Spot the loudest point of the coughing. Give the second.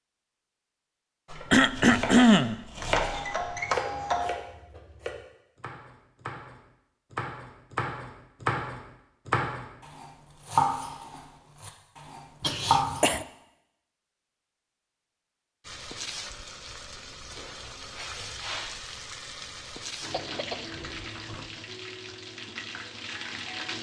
2 s.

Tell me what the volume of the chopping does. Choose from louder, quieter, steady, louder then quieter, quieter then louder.
quieter then louder.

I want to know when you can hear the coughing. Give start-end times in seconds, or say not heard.
1.5-2.5, 12.4-13.2, 20.1-21.5.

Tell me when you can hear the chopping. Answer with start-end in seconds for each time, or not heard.
1.3-13.2.